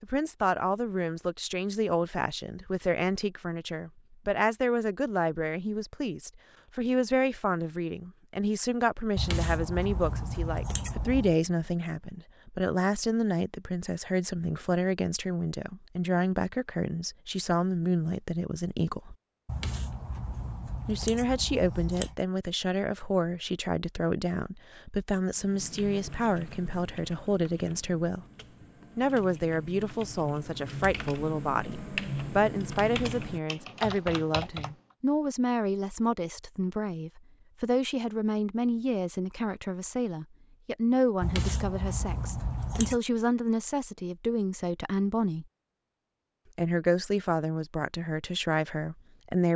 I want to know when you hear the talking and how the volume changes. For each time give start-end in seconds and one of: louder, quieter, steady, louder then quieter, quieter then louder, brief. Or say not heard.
0.0-19.1 steady
20.9-28.2 steady
28.9-45.5 steady
46.5-49.5 brief.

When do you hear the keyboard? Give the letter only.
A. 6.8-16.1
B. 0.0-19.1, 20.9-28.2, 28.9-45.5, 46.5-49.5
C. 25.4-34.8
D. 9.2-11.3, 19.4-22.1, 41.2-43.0
C.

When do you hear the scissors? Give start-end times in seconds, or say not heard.
9.2-11.3, 19.4-22.1, 41.2-43.0.